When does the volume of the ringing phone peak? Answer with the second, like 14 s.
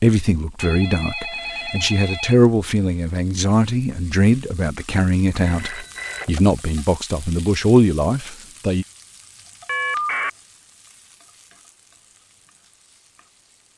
10 s.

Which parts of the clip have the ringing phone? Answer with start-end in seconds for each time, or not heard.
0.6-2.4, 5.4-6.6, 9.7-10.3.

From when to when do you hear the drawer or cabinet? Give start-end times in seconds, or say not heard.
not heard.